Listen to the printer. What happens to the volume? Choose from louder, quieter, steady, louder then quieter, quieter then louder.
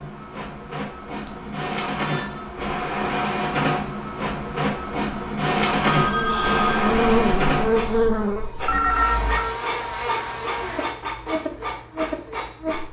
louder then quieter.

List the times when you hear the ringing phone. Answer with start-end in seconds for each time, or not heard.
1.2-2.4, 5.8-7.0, 8.7-9.5.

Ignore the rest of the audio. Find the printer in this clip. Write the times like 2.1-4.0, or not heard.
0.0-12.8.